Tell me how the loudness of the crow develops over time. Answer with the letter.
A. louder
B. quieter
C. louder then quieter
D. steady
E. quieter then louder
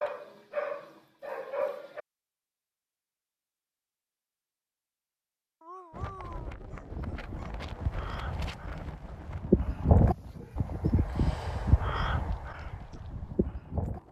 C.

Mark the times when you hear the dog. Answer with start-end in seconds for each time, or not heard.
0.0-2.0, 5.6-7.5, 10.3-11.8.